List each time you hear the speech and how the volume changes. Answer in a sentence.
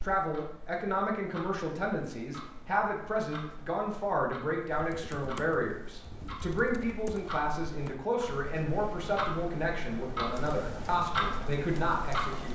You can hear the speech from 0.0 to 12.5 s, at a steady volume.